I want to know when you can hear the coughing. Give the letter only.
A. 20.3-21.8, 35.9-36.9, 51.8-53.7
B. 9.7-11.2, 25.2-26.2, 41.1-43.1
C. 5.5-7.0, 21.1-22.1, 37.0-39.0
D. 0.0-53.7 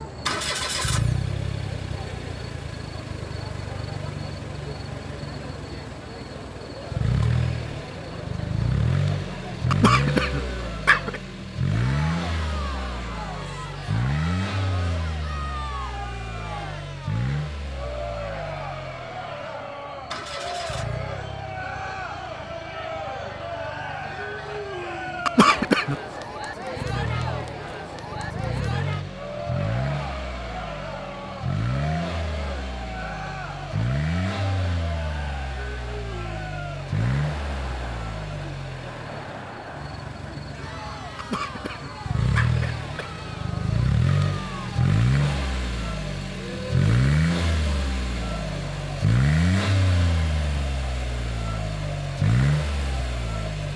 B.